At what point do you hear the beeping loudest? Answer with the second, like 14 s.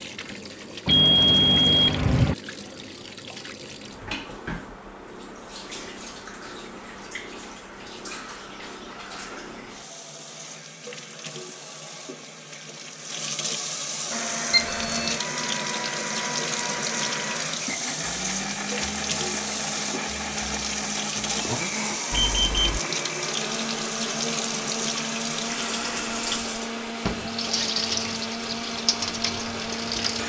1 s.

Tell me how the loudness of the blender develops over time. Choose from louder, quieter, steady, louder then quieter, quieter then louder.
steady.